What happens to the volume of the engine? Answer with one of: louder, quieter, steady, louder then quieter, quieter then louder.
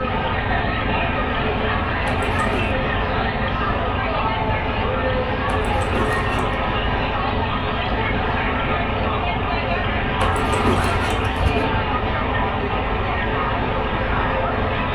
steady.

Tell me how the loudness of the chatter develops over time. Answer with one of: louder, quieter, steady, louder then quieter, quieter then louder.
steady.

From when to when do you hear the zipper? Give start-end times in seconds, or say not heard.
2.0-2.8, 5.5-6.7, 10.2-11.7.